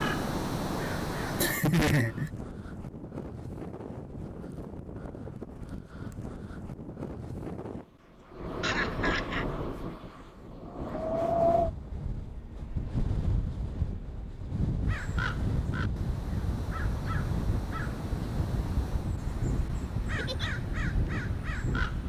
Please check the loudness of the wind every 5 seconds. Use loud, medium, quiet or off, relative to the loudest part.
medium, medium, loud, loud, loud.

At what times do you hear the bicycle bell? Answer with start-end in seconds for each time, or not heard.
not heard.